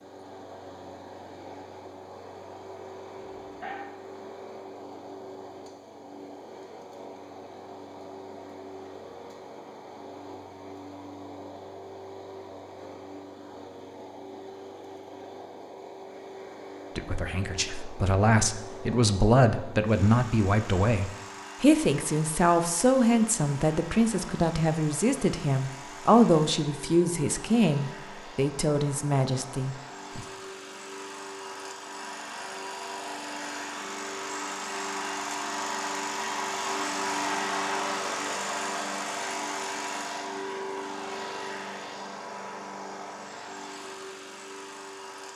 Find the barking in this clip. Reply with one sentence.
The barking can be heard from 3.1 to 3.9 s.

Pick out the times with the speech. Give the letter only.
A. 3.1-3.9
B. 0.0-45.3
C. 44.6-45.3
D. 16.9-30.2
D.